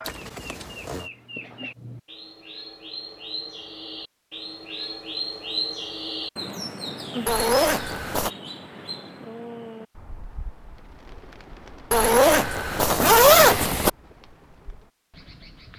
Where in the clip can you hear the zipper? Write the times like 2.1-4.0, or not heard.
0.1-1.1, 7.2-8.3, 11.9-13.9.